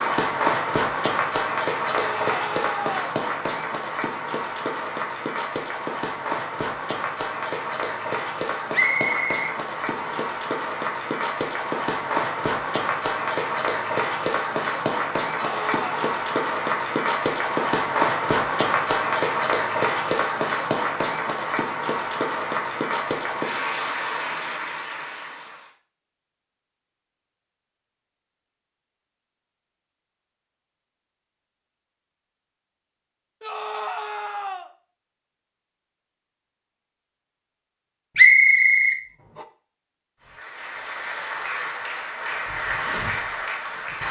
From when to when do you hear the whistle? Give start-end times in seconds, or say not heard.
8.7-10.3, 38.1-39.0.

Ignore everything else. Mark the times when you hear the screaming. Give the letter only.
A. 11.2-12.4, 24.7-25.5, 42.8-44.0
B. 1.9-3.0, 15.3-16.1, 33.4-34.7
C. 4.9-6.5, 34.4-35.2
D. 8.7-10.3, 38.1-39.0
B.